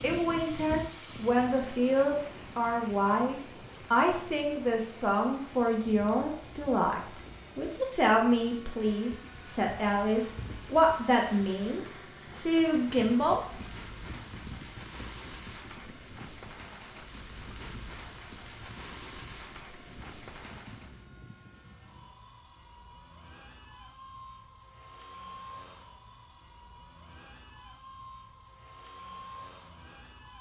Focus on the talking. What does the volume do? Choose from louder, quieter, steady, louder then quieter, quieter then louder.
steady.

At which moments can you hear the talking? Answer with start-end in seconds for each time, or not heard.
0.0-13.4.